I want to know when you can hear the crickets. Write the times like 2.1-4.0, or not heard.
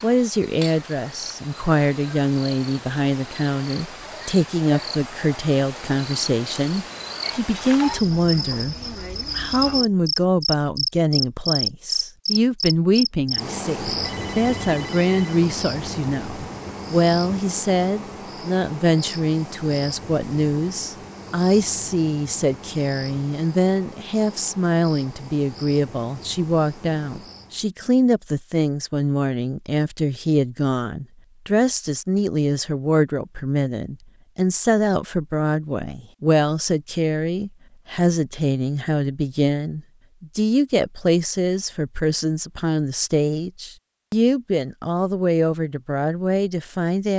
0.0-27.7.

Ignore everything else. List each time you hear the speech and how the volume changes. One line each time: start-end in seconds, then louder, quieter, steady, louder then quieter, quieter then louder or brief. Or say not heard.
0.0-8.8 steady
9.3-47.1 steady.